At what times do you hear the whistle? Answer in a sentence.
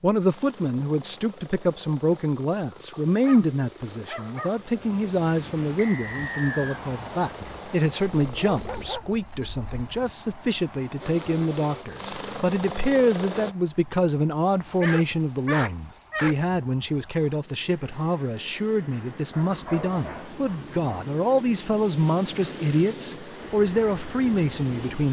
The whistle can be heard from 5.8 to 6.8 s.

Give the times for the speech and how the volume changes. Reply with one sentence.
You can hear the speech from 0.0 to 25.0 s, at a steady volume.